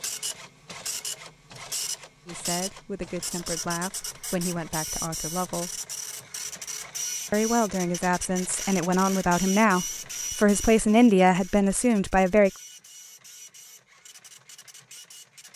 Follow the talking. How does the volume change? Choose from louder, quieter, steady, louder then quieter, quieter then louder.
louder.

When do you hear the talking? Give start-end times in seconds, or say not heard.
2.2-5.7, 7.3-12.5.